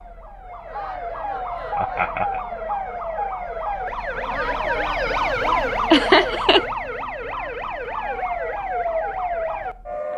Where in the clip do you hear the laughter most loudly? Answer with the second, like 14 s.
6 s.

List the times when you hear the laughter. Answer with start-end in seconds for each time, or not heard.
1.8-2.4, 5.9-6.7.